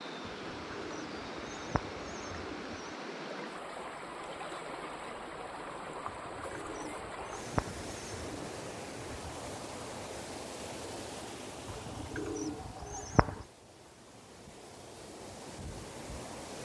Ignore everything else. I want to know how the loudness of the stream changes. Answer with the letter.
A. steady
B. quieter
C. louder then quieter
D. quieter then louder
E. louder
B.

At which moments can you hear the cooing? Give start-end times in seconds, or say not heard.
0.2-3.0, 6.0-8.5, 11.7-13.5.